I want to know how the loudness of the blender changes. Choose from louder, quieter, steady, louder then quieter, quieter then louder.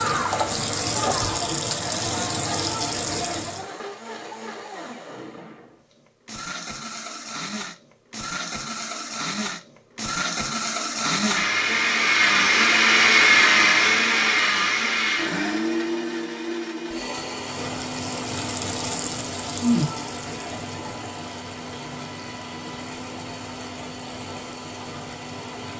louder then quieter.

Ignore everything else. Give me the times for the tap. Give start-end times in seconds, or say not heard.
0.0-3.7, 17.3-25.7.